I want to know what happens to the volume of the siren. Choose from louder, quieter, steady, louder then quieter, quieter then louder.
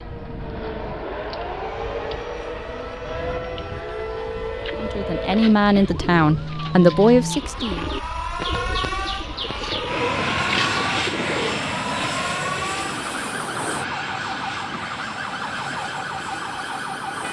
steady.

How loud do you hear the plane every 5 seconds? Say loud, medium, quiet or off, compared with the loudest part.
quiet, quiet, loud, medium.